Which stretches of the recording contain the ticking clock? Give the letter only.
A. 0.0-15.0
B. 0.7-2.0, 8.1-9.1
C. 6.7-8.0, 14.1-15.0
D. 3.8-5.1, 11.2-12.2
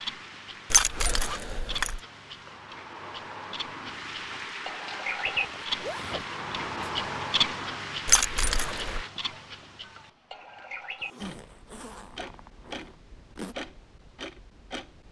A.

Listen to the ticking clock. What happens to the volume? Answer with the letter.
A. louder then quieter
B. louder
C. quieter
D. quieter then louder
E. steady
A.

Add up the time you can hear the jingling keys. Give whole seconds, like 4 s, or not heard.
2 s.